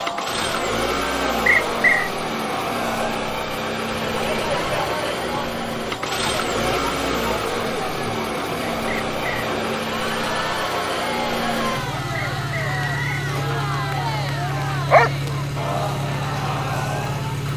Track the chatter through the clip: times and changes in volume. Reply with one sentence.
The chatter can be heard from 0.0 to 17.4 s, at a steady volume.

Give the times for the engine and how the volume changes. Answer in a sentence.
You can hear the engine from 0.0 to 17.5 s, at a steady volume.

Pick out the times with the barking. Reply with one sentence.
The barking can be heard from 14.6 to 15.7 s.